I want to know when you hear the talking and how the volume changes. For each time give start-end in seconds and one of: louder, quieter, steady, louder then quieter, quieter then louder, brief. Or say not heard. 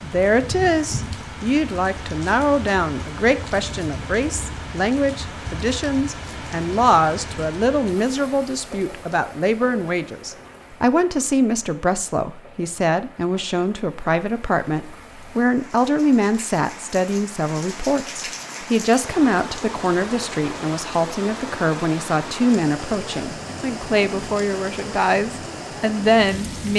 0.0-26.7 steady.